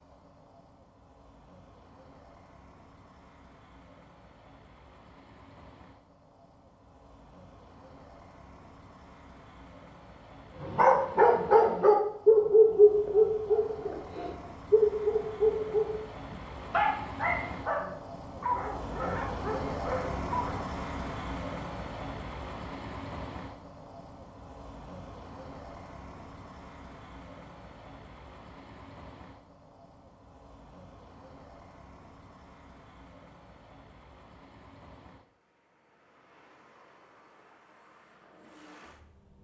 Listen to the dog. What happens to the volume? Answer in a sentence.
The loudness of the dog goes down.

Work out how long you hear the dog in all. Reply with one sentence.
The dog can be heard for 10 seconds in total.